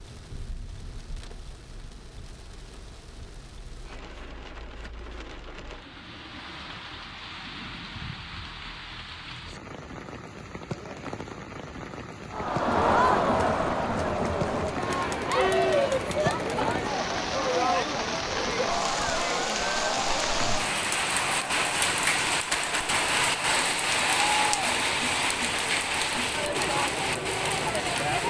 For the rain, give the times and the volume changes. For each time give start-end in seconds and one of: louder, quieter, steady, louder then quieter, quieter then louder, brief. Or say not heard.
0.0-28.2 louder.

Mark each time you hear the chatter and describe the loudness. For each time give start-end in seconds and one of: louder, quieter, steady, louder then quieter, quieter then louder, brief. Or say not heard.
12.3-28.2 quieter.